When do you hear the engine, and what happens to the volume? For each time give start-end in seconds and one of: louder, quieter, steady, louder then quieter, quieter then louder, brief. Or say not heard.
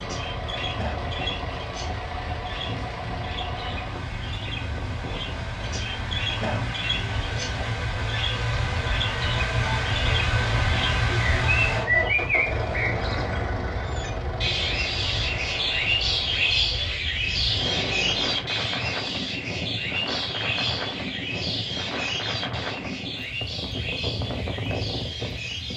0.0-18.5 louder then quieter.